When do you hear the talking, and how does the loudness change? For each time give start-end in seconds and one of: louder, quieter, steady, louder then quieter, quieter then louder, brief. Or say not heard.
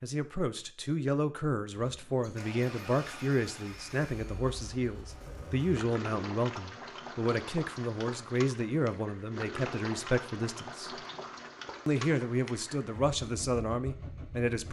0.0-11.0 steady
11.8-14.6 brief.